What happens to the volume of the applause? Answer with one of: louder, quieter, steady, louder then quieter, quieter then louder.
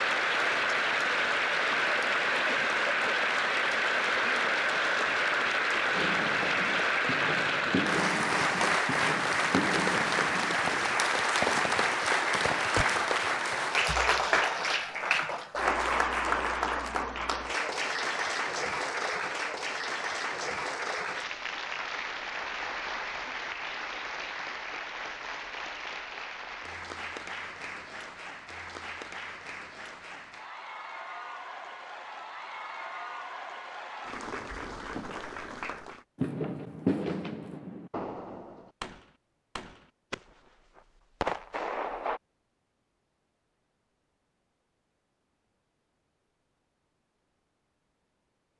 quieter.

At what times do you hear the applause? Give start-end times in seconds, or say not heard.
0.0-36.0.